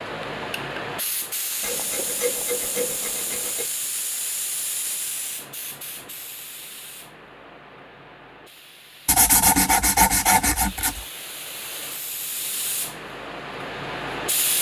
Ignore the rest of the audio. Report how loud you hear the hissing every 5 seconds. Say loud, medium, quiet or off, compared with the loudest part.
loud, medium, loud.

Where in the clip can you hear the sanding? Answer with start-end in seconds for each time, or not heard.
1.6-3.6, 9.1-11.1.